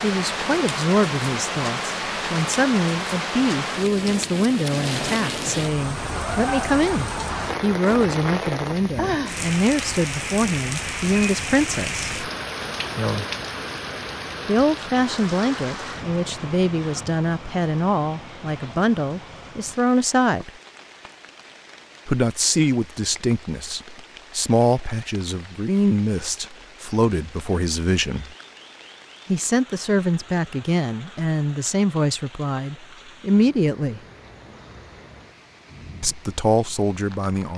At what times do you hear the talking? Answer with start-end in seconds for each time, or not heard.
0.0-12.1, 14.4-20.5, 22.1-28.3, 29.2-34.0, 36.0-37.5.